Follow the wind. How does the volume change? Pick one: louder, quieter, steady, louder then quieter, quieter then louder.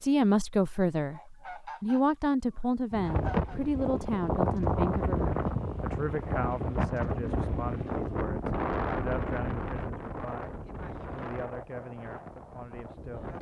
quieter.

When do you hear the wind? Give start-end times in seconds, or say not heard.
2.9-13.3.